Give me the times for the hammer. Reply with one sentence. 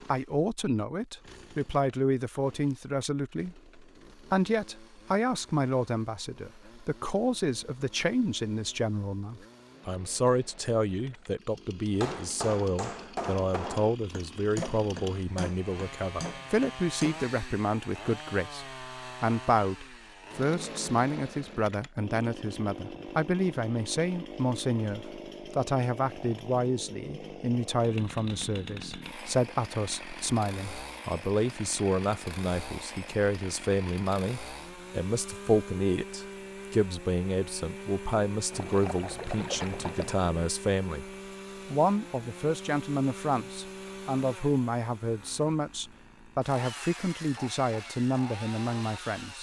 You can hear the hammer from 11.9 to 17.3 s.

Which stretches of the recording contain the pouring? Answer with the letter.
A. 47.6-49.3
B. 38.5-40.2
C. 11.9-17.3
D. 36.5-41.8
B.